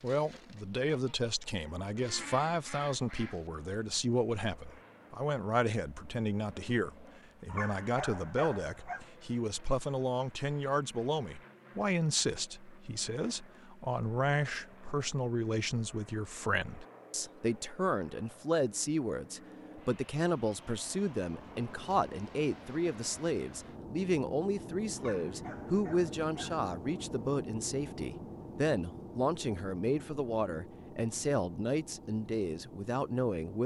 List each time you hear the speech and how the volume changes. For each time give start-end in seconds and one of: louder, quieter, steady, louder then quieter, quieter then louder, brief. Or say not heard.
0.0-33.6 steady.